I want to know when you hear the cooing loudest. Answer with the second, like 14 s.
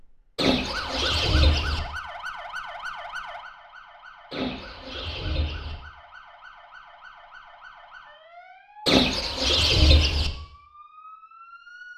9 s.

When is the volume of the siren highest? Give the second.
1 s.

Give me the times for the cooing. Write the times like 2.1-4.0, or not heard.
0.3-1.8, 4.3-5.8, 8.8-10.3.